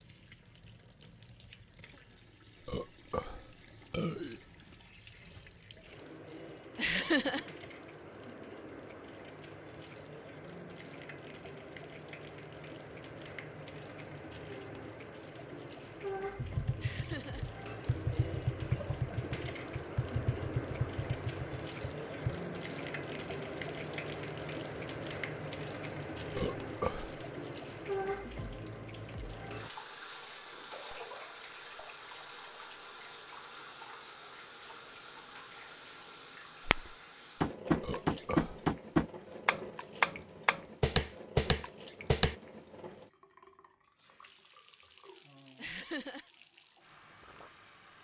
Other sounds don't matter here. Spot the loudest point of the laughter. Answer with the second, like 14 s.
7 s.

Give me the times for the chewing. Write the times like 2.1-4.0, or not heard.
not heard.